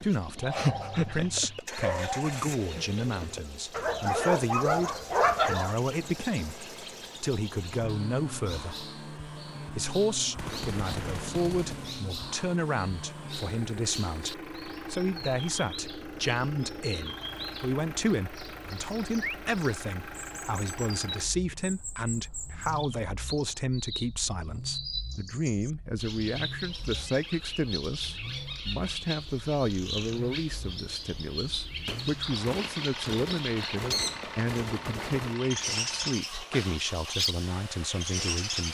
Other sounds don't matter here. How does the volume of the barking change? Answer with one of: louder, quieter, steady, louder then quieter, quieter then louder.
quieter then louder.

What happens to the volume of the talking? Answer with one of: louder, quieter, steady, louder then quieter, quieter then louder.
steady.